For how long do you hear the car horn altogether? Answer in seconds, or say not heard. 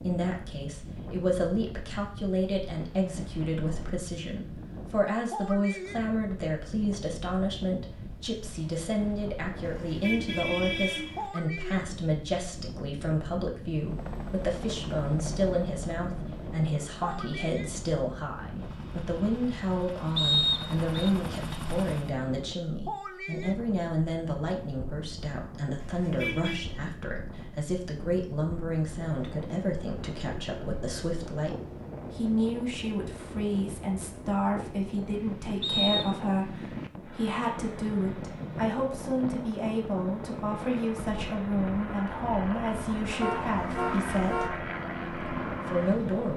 4 s.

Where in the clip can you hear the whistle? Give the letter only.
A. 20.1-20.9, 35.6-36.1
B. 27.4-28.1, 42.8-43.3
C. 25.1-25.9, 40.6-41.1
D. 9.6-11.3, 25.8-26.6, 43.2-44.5
A.